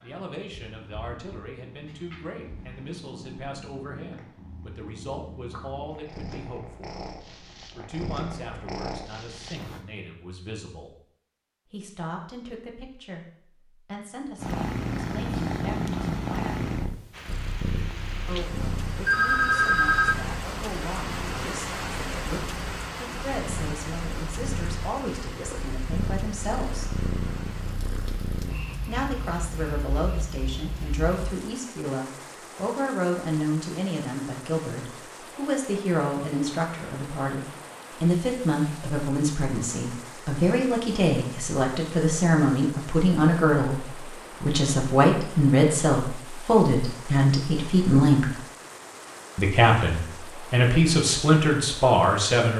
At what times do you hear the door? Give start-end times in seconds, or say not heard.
not heard.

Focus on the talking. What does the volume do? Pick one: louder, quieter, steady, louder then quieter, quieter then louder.
louder.